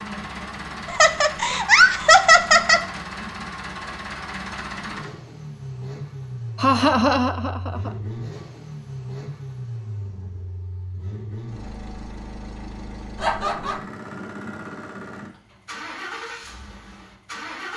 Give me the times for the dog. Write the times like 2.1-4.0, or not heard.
not heard.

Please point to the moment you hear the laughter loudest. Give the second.
2 s.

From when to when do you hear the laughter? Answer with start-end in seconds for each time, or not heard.
0.8-2.8, 6.5-7.9, 13.2-13.8.